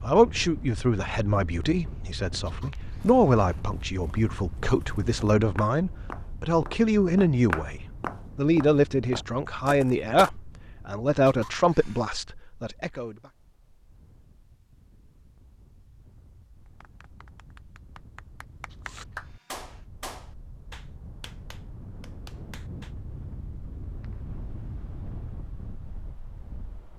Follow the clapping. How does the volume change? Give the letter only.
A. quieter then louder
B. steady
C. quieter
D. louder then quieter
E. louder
D.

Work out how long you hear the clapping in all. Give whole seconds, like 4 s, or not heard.
6 s.